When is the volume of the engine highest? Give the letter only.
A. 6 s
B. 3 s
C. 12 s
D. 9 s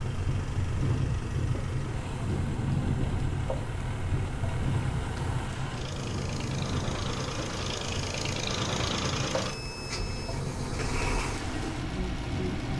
D.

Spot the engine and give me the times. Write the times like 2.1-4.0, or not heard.
0.0-12.7.